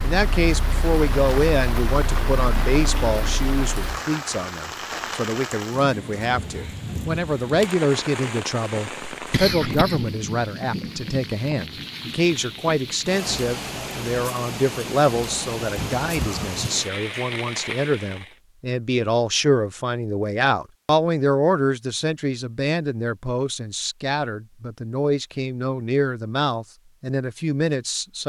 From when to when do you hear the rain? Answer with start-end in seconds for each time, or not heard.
0.0-18.4.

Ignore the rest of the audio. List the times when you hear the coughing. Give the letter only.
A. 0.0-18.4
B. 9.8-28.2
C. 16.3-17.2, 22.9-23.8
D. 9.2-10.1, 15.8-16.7
D.